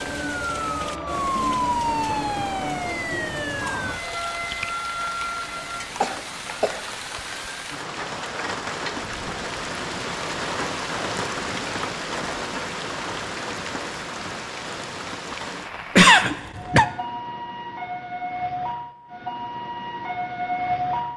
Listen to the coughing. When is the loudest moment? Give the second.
16 s.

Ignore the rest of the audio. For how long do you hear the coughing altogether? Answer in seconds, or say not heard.
2 s.